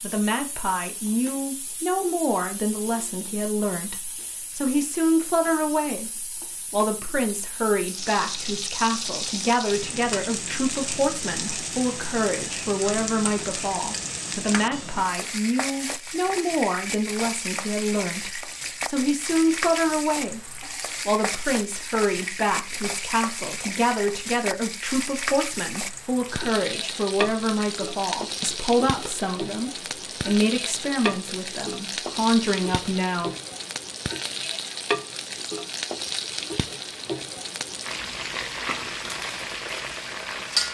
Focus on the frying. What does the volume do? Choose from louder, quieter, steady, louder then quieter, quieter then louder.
louder.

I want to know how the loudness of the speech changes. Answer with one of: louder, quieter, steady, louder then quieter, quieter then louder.
steady.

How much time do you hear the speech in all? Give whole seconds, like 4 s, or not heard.
33 s.